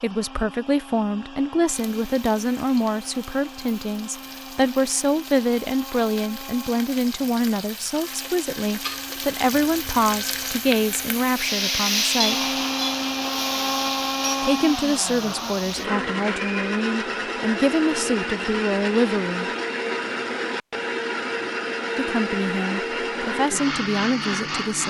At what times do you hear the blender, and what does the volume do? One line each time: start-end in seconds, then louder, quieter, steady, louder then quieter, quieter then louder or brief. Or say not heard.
0.0-24.8 louder.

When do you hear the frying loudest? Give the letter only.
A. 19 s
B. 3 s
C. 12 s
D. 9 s
C.